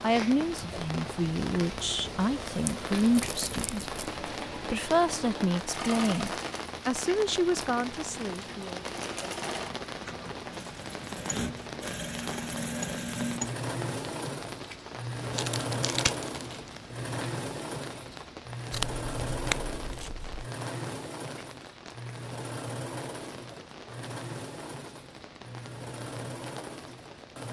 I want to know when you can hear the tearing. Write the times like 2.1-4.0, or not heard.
2.6-4.0, 15.3-16.7, 18.7-20.5.